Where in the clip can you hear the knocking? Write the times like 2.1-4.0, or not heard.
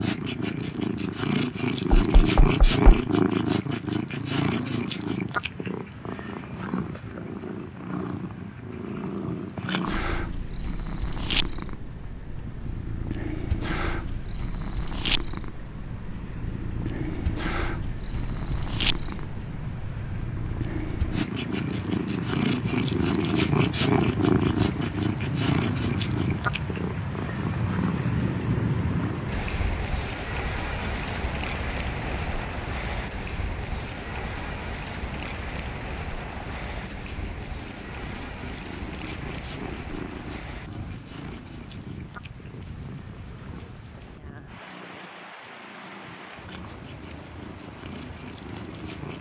1.9-3.0.